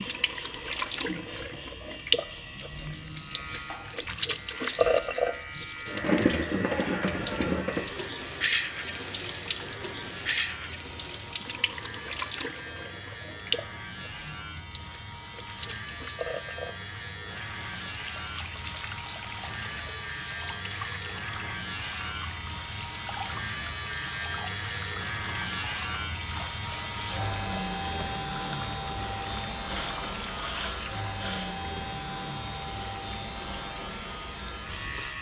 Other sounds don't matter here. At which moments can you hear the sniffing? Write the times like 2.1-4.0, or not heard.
29.6-31.5.